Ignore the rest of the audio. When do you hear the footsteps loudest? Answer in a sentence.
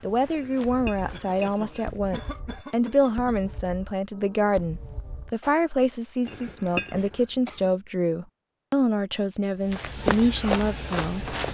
The volume of the footsteps peaks at 10 seconds.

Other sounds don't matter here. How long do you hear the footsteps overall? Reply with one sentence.
You can hear the footsteps for 4 seconds altogether.